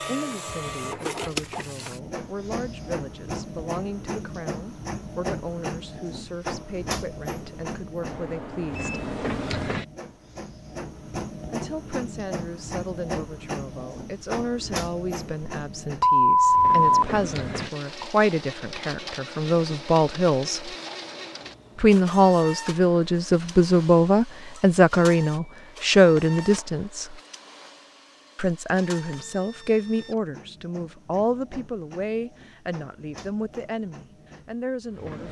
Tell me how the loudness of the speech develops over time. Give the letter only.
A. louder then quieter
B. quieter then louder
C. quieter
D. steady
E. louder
A.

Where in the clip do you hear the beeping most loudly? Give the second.
16 s.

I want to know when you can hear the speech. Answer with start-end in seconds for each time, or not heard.
0.0-8.9, 11.5-20.8, 21.8-27.1, 28.4-35.2.